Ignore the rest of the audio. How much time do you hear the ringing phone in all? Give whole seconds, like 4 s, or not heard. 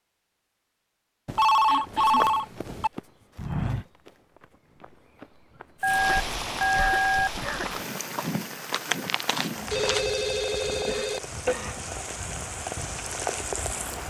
5 s.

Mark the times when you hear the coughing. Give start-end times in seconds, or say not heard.
1.6-2.2, 6.0-7.7, 10.7-11.9.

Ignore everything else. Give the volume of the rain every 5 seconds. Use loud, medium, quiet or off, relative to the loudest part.
off, loud, loud.